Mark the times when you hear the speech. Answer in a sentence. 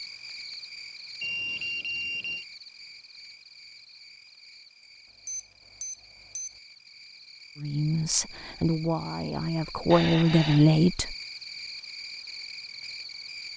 The speech can be heard from 7.6 to 11.2 s.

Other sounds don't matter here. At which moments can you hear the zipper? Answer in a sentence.
You can't hear the zipper here.